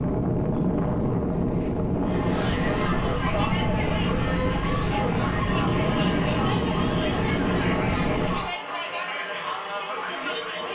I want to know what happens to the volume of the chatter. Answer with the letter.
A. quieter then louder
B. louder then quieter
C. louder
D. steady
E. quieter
D.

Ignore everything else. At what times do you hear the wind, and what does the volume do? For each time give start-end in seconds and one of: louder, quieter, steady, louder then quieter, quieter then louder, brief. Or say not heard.
0.0-8.5 steady.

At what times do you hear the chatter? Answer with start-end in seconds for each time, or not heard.
1.9-10.6.